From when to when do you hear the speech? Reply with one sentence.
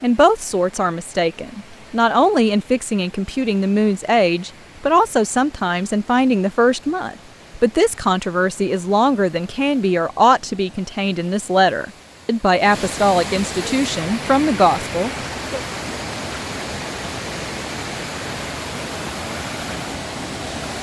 The speech can be heard from 0.0 to 15.6 s.